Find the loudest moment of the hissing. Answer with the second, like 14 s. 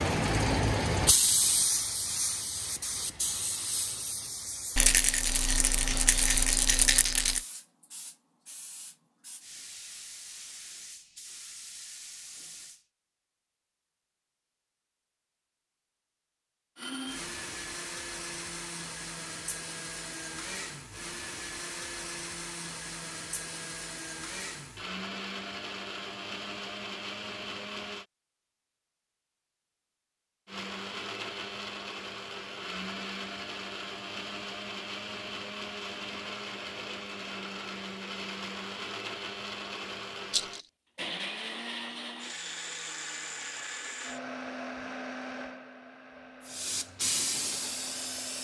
1 s.